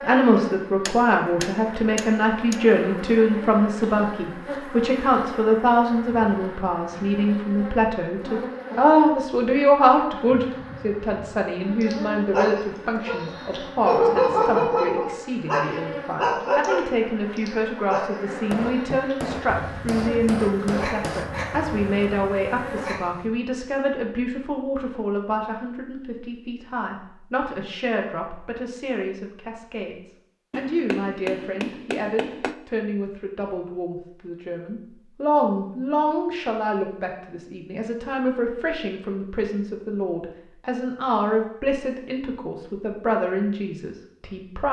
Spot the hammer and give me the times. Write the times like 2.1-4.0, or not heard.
0.8-2.6, 18.5-21.3, 30.5-32.5.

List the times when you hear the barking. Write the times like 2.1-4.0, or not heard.
11.8-23.3.